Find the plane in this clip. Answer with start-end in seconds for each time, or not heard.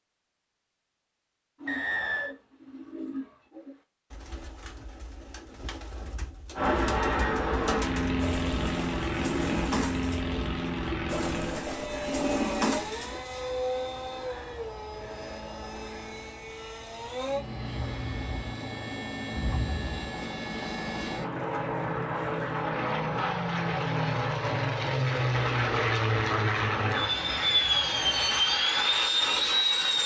6.5-30.0.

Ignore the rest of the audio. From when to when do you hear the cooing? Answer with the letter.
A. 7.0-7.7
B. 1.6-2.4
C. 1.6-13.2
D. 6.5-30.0
C.